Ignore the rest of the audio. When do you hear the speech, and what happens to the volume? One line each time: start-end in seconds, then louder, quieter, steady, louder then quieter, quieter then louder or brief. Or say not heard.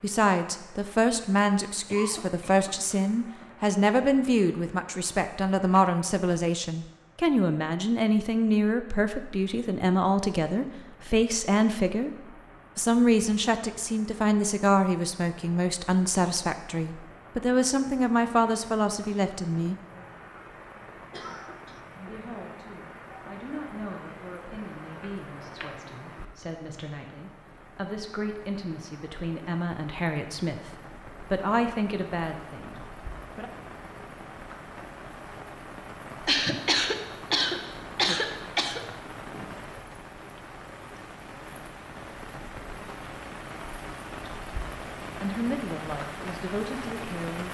0.0-12.1 steady
12.8-19.8 steady
21.9-33.5 louder
45.1-47.4 brief.